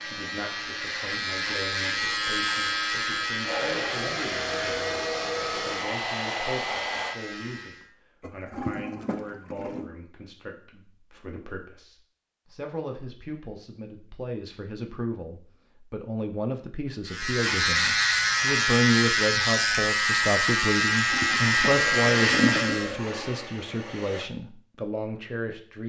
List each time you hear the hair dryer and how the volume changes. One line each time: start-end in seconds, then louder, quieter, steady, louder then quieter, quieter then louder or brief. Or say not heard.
0.0-7.2 louder
21.6-24.3 brief.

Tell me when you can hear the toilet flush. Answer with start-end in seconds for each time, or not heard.
8.2-9.9, 20.8-22.8.